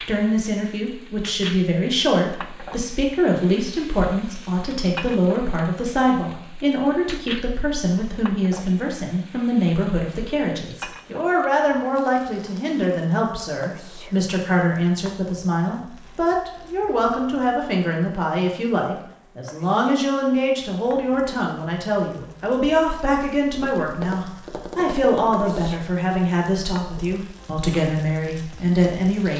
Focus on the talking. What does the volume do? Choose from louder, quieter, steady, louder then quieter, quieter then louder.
steady.